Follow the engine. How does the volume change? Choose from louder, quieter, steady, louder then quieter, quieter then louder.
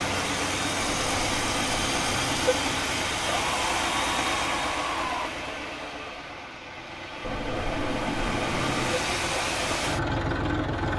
quieter then louder.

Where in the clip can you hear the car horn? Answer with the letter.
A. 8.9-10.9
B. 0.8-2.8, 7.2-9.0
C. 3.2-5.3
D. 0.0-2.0
B.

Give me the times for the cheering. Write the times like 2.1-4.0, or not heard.
3.2-5.3.